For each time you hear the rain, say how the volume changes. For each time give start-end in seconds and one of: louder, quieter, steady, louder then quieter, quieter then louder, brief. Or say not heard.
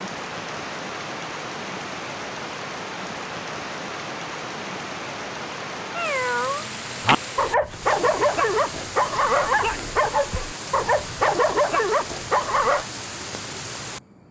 0.0-14.2 steady.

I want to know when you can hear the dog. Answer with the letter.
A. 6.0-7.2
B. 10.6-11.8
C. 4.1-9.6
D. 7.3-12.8
D.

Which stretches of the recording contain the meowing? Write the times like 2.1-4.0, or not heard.
6.0-7.2.